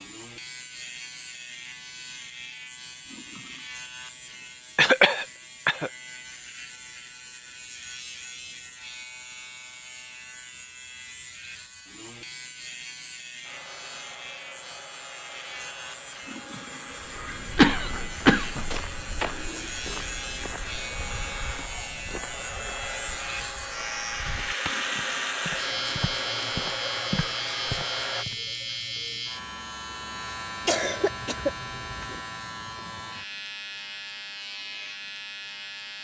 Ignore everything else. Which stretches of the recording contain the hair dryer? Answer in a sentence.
You can hear the hair dryer from 13.4 to 28.2 s.